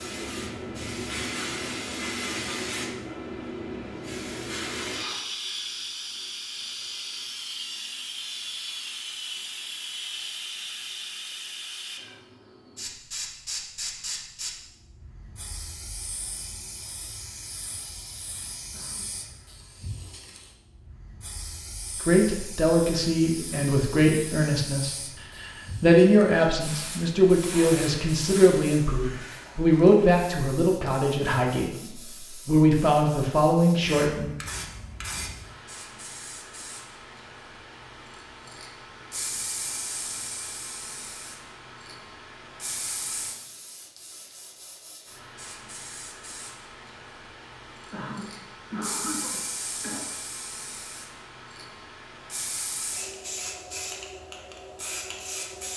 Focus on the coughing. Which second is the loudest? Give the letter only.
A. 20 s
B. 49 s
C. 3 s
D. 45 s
B.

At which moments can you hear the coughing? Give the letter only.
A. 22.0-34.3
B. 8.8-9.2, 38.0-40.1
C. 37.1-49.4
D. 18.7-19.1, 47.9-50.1
D.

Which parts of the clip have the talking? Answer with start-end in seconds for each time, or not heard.
22.0-34.3.